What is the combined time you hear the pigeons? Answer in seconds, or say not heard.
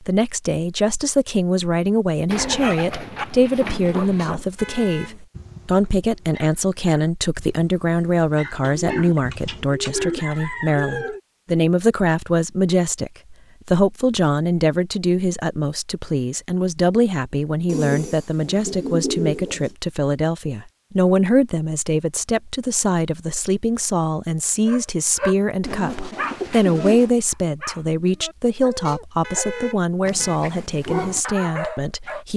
8 s.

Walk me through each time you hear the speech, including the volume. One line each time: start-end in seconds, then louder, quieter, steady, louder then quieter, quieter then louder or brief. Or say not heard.
0.0-32.3 steady.